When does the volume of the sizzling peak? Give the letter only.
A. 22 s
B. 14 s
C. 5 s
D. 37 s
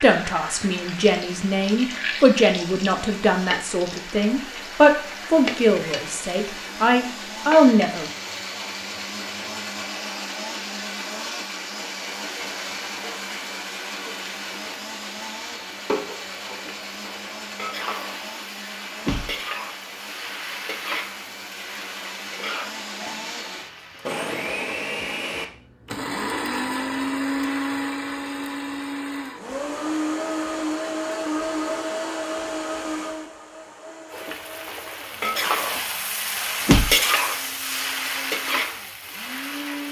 D.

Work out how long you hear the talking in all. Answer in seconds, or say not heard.
8 s.